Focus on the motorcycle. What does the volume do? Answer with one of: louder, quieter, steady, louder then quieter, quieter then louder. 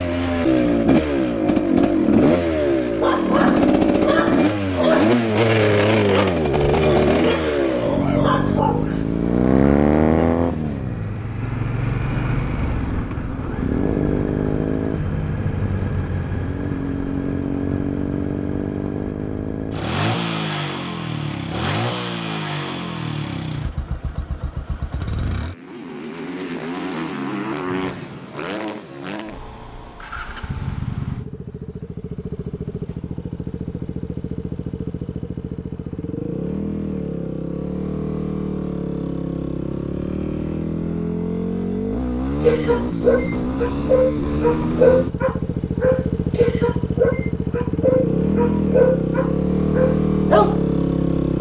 quieter then louder.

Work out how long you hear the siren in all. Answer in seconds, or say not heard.
not heard.